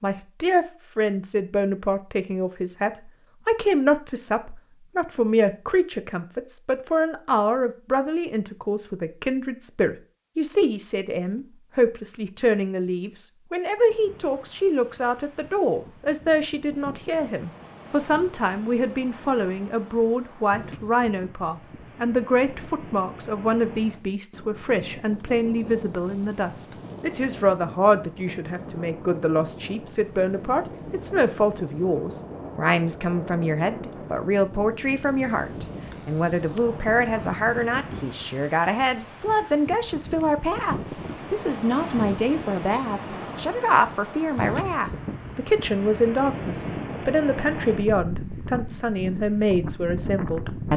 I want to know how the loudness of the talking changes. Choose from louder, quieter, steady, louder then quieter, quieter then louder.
steady.